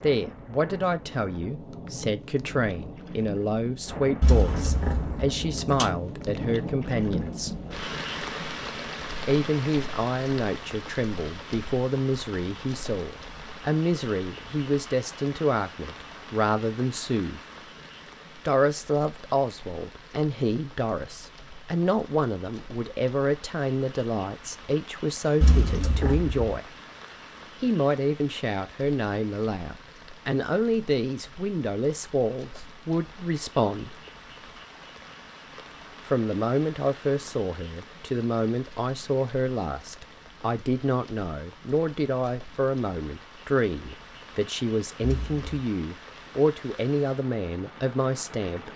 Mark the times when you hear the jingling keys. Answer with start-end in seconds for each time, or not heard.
4.2-6.0, 25.4-26.6, 45.0-45.6.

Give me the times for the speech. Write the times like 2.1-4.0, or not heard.
0.0-7.5, 9.2-17.4, 18.4-26.8, 27.6-34.0, 36.0-48.7.